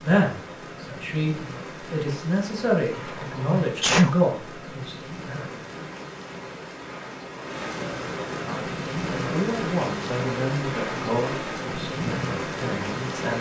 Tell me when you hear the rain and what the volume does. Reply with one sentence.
The rain can be heard from 0.0 to 13.3 s, getting louder.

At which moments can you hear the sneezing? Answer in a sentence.
The sneezing can be heard from 2.9 to 4.2 s.